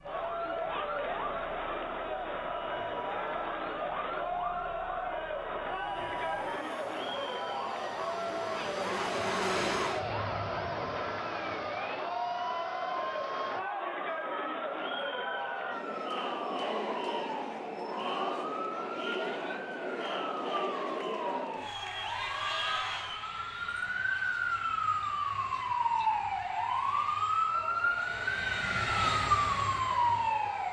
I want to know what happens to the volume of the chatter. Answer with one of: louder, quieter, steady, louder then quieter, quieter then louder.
quieter.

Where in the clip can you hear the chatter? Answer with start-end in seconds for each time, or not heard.
0.0-30.6.